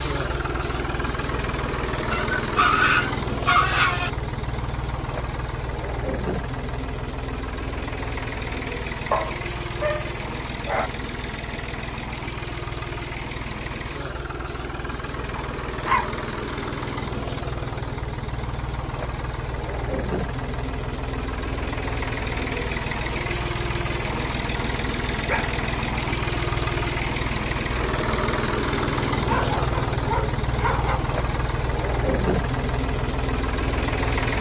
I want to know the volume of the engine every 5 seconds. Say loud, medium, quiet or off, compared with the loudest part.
loud, medium, medium, medium, loud, loud, loud.